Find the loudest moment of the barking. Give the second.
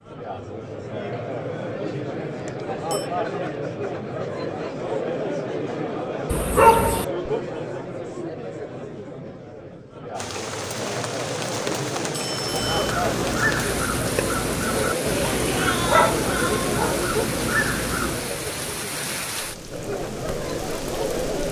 7 s.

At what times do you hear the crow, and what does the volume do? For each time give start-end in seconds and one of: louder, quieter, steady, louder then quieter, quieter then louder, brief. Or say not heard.
12.4-18.4 steady.